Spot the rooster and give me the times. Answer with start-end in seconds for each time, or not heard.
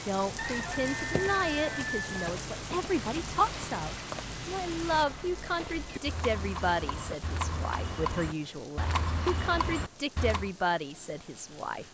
0.3-2.2.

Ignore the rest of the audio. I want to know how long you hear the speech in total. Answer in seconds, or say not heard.
12 s.